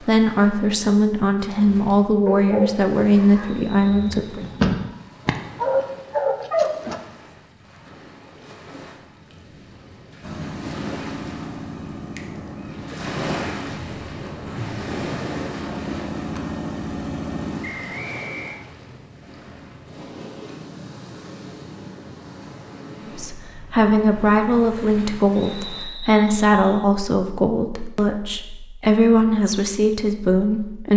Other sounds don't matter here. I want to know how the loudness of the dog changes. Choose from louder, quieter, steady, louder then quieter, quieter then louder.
quieter then louder.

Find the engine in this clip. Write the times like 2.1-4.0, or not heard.
10.2-17.9.